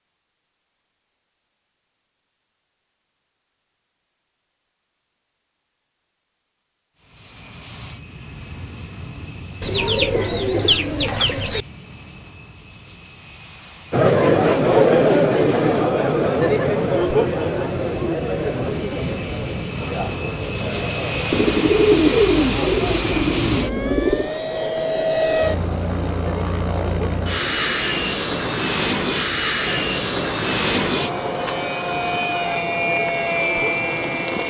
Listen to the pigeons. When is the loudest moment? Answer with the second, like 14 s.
22 s.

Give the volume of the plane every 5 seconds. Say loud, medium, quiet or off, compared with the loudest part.
off, quiet, quiet, medium, loud, loud, loud.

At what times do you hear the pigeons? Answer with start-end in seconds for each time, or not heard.
9.6-11.7, 21.3-24.3.